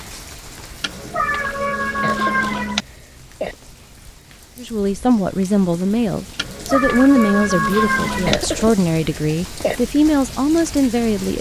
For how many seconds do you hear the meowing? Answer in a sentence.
You can hear the meowing for 4 seconds altogether.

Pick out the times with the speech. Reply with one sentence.
The speech can be heard from 4.5 to 11.3 s.